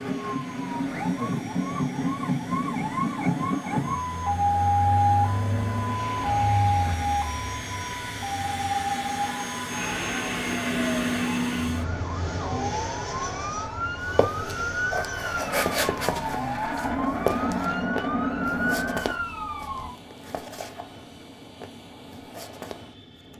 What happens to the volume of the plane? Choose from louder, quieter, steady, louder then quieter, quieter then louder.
louder then quieter.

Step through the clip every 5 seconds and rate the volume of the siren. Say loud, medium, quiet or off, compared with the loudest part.
loud, loud, medium, medium, off.